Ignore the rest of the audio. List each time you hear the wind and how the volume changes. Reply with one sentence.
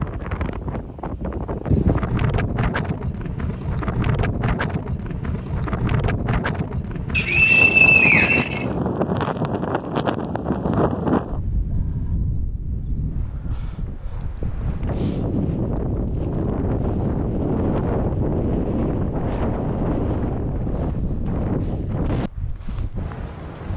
You can hear the wind from 0.0 to 23.7 s, at a steady volume.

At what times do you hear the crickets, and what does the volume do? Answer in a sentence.
You can't hear the crickets here.